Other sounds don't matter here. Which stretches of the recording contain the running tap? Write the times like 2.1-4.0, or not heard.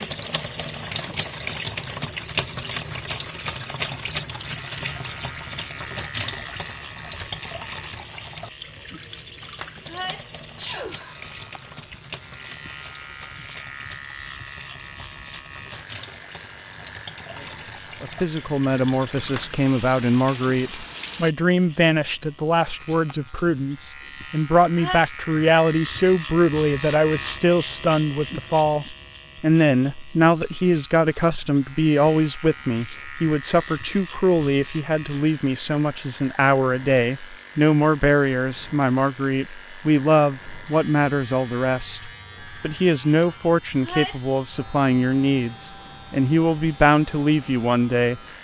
0.0-21.3.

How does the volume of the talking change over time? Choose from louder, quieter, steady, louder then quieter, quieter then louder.
steady.